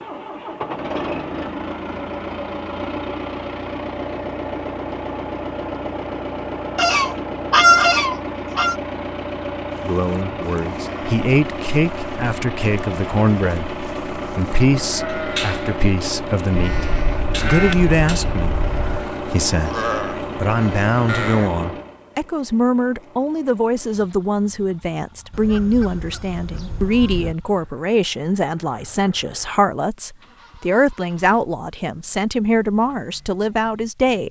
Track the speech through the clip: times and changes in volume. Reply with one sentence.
You can hear the speech from 9.8 to 34.2 s, at a steady volume.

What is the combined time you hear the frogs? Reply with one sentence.
The frogs can't be heard in this clip.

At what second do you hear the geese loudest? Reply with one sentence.
The loudest moment of the geese is at 8 seconds.